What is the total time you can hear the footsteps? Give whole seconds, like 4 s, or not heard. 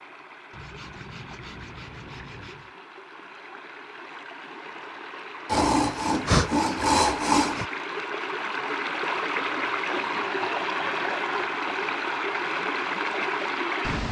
not heard.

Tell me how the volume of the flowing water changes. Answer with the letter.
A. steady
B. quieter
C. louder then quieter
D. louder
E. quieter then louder
D.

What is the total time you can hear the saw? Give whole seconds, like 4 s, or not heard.
6 s.